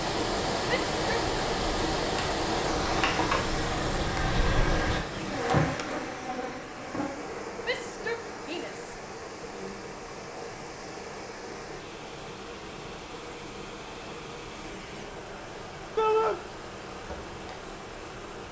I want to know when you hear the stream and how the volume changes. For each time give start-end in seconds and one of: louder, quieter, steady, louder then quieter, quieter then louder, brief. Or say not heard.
0.0-18.4 quieter.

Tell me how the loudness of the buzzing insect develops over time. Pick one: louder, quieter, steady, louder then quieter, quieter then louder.
quieter.